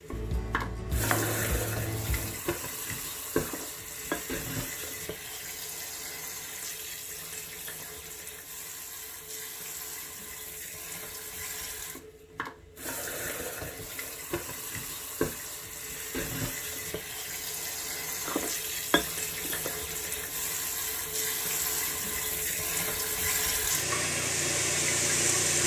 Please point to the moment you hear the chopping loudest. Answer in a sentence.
The volume of the chopping peaks at 1 second.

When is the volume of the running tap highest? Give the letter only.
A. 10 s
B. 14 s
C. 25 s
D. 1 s
C.